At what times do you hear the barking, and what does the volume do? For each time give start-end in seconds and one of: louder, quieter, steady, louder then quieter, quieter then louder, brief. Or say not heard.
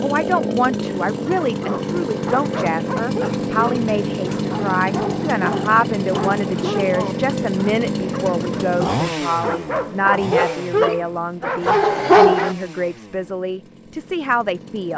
1.2-12.6 louder.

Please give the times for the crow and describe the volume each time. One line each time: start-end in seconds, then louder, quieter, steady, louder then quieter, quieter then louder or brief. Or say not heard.
not heard.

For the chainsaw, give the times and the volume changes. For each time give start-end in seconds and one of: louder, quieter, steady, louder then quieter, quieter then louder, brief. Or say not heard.
0.0-14.9 quieter.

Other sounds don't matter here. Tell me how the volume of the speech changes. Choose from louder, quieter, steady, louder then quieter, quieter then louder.
steady.